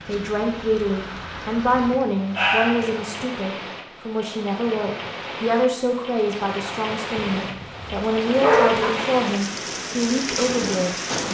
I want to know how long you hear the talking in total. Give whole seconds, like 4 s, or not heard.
11 s.